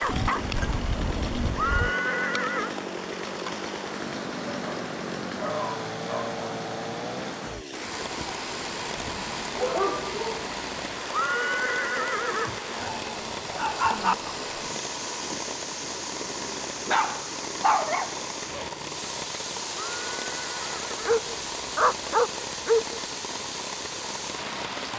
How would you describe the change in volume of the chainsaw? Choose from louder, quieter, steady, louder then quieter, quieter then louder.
steady.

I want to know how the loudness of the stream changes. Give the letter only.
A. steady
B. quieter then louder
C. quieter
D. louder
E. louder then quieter
A.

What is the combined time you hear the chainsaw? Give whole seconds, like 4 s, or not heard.
25 s.